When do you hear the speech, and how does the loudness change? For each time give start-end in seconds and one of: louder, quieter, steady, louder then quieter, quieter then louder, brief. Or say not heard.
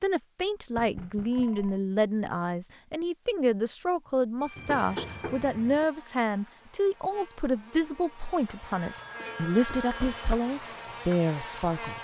0.0-11.9 steady.